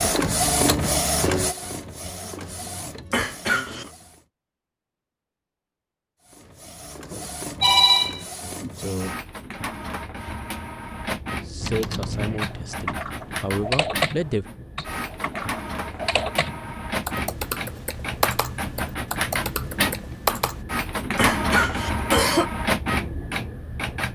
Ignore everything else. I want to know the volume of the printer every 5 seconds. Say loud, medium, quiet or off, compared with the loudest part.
loud, medium, medium, loud, loud.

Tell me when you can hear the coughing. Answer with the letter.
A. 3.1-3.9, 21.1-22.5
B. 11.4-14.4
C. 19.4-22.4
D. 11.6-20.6
A.